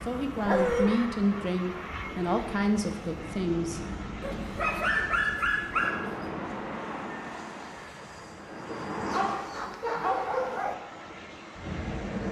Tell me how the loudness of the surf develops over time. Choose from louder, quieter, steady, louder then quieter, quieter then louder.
louder then quieter.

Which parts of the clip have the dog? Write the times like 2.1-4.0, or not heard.
0.5-0.9, 4.2-6.3, 9.1-10.8.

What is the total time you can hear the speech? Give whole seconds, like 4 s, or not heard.
4 s.